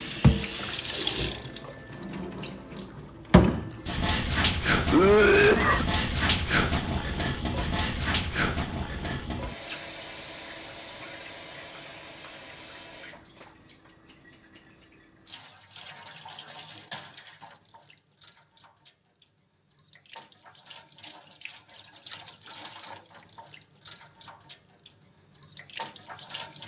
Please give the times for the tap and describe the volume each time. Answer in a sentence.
You can hear the tap from 0.0 to 26.6 s, getting quieter.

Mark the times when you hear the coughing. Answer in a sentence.
You can hear the coughing from 4.9 to 5.8 s.